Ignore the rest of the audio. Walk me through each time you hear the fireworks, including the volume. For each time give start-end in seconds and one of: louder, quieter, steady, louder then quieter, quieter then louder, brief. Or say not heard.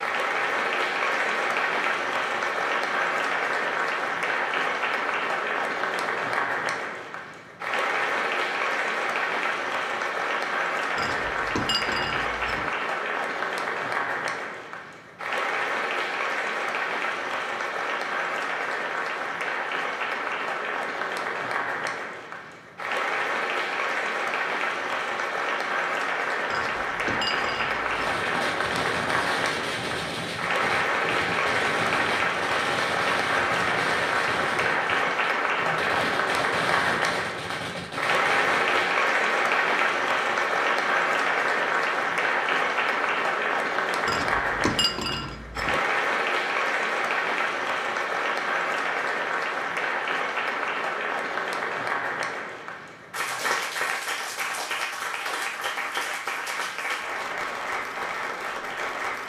27.8-39.0 steady.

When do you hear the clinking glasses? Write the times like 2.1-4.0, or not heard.
10.9-12.7, 26.4-28.1, 44.0-45.8.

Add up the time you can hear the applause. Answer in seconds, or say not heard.
59 s.